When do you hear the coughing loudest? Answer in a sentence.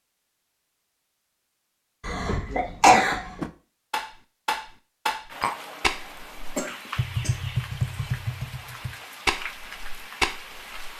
The loudest moment of the coughing is at 3 seconds.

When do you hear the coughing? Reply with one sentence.
The coughing can be heard from 2.0 to 3.4 s and from 6.5 to 7.3 s.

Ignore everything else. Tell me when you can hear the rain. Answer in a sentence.
You can hear the rain from 5.2 to 10.9 s.